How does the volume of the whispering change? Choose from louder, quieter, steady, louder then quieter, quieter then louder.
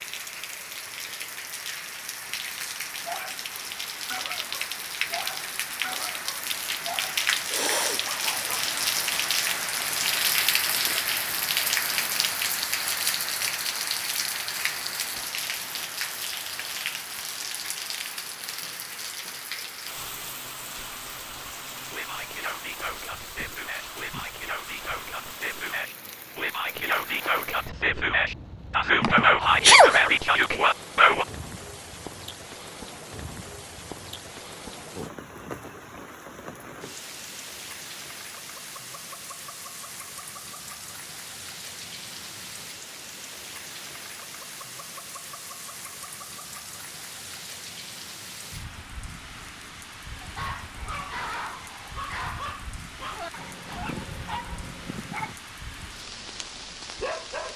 louder.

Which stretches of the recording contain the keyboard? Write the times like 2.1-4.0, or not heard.
not heard.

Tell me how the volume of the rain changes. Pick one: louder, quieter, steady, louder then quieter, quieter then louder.
quieter.